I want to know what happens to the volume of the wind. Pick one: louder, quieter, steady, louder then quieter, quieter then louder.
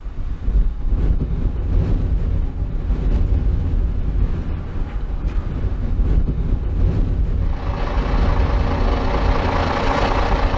steady.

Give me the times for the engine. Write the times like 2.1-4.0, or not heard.
7.3-10.5.